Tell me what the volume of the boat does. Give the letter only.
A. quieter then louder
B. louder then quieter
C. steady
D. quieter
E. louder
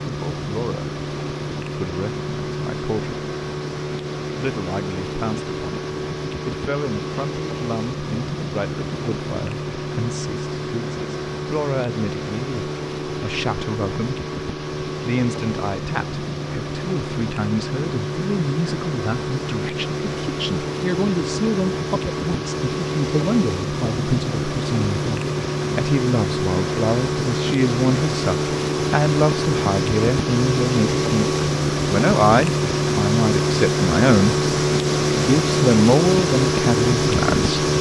E.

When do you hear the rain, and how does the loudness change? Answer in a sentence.
You can't hear the rain here.